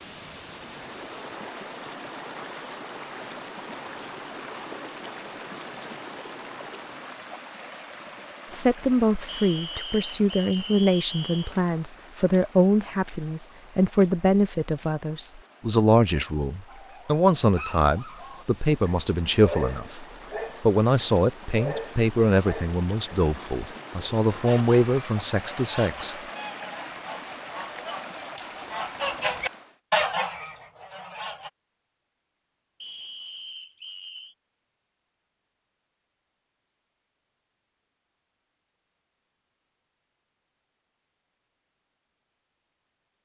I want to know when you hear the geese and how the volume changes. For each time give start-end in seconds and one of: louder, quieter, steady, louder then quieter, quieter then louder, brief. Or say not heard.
24.4-31.5 louder.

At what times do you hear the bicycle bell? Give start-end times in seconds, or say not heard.
not heard.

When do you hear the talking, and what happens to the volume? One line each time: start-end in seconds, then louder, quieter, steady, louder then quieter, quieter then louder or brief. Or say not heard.
8.5-26.1 steady.